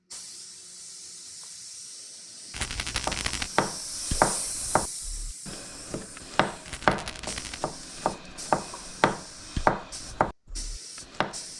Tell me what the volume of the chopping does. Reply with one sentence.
The loudness of the chopping goes down, then up.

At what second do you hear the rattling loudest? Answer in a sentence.
The loudest moment of the rattling is at 3 seconds.